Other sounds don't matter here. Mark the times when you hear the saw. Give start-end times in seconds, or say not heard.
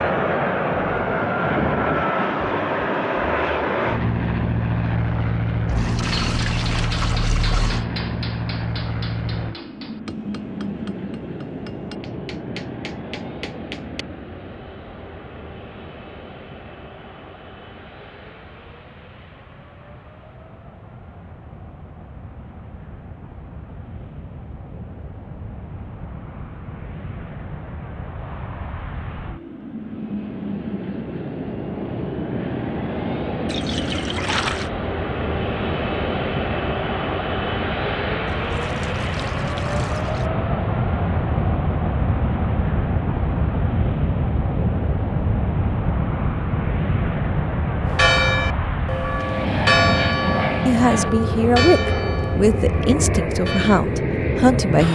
not heard.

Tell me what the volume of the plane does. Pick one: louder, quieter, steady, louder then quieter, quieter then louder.
quieter then louder.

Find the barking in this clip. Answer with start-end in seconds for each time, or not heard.
not heard.